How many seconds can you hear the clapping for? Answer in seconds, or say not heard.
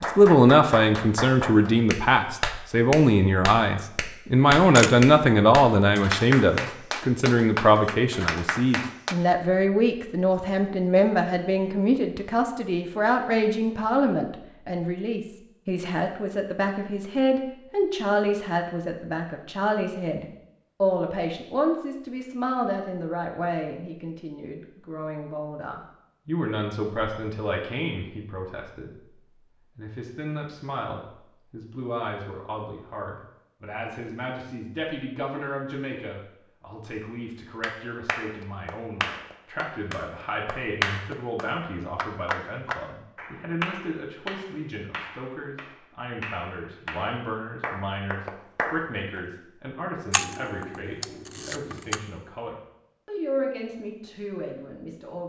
21 s.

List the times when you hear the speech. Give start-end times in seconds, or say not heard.
0.0-29.1, 29.8-55.2.